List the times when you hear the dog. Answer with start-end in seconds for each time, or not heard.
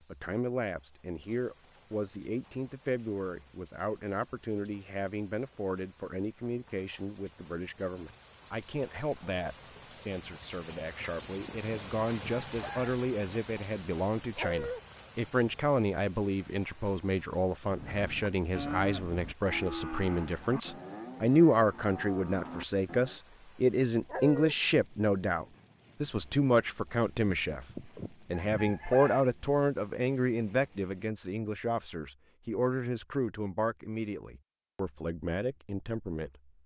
14.3-14.8, 24.1-24.6.